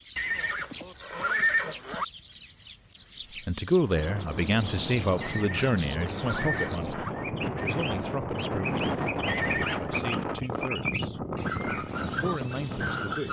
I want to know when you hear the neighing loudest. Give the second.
1 s.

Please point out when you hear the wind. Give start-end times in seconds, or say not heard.
3.8-13.2.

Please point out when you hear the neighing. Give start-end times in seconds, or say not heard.
0.1-2.0, 5.2-7.1, 9.2-9.9.